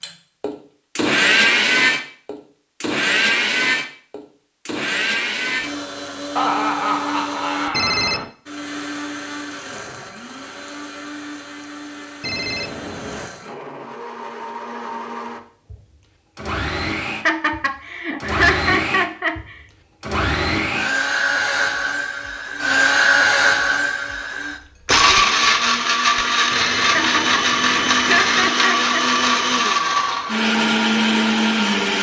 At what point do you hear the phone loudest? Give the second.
8 s.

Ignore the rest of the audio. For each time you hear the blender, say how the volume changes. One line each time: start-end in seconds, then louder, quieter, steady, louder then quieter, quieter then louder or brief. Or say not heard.
0.0-31.9 quieter then louder.